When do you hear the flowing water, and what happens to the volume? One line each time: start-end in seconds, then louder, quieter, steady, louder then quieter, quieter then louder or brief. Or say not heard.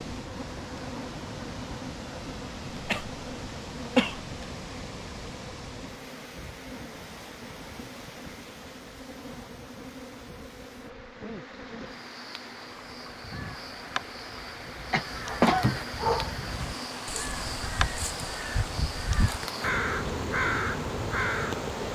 0.0-21.8 quieter then louder.